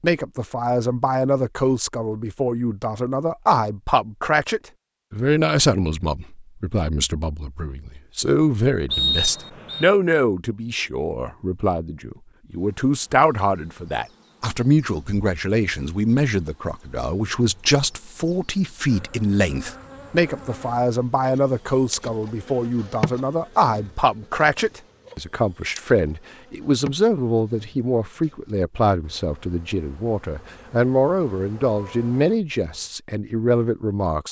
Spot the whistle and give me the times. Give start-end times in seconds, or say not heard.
8.9-9.8.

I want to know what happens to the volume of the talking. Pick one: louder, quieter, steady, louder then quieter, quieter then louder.
steady.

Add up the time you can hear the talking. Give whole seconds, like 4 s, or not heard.
34 s.